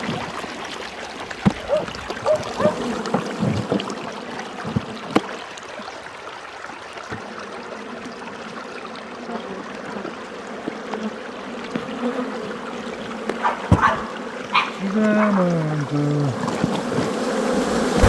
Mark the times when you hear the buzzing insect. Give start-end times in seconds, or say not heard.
0.0-5.5, 7.0-18.0.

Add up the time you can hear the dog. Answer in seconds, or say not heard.
4 s.